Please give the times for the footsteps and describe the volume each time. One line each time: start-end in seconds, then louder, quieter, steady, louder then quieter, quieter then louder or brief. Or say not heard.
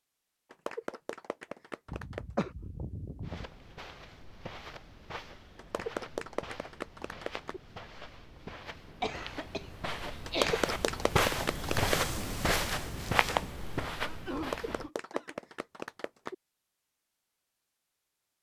3.2-14.9 louder.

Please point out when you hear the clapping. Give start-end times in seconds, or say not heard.
0.5-2.5, 5.5-7.6, 10.2-12.0, 14.3-16.4.